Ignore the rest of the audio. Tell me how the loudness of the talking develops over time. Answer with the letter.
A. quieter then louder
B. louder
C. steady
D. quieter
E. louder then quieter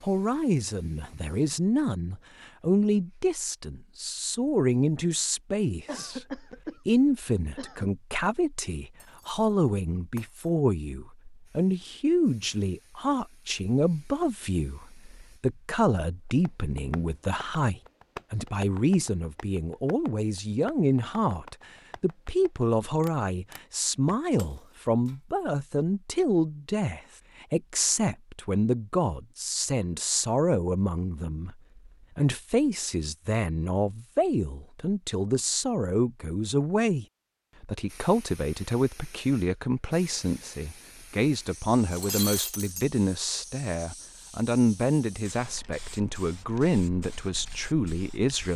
C.